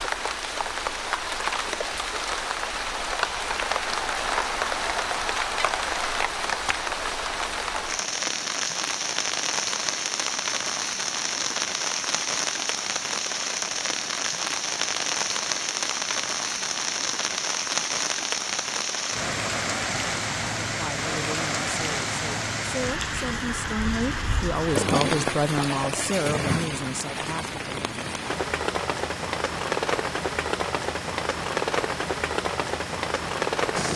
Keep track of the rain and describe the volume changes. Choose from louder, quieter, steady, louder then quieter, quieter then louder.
steady.